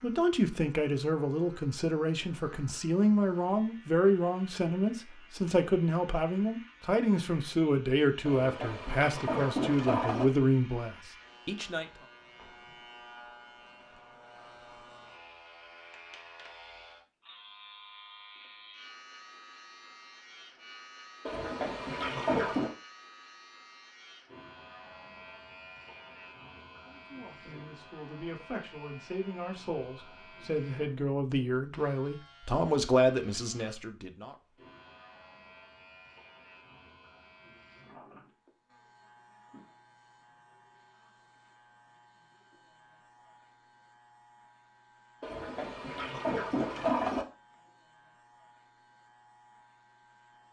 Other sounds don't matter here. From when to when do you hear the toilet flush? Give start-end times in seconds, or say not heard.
8.2-10.2, 21.2-22.8, 45.2-47.2.